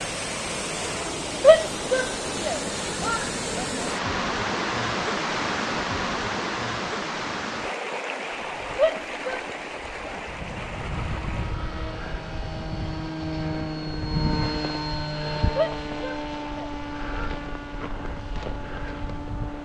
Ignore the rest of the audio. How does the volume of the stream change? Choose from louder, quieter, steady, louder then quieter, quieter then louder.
quieter.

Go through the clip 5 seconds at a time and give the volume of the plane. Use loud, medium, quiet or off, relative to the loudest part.
off, quiet, loud, loud.